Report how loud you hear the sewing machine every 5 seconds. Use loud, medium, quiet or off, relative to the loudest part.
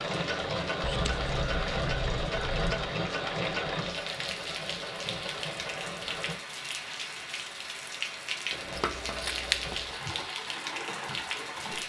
loud, medium, medium.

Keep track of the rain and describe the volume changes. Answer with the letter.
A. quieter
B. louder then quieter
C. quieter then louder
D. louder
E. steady
D.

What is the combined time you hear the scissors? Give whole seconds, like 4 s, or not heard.
3 s.